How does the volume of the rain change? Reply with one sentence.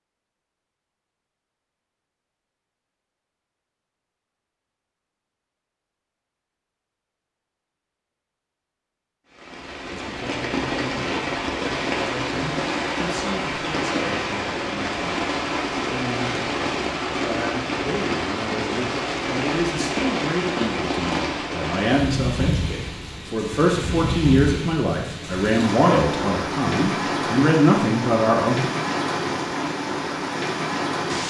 The volume of the rain stays about the same.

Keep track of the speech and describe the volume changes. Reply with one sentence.
The loudness of the speech goes up.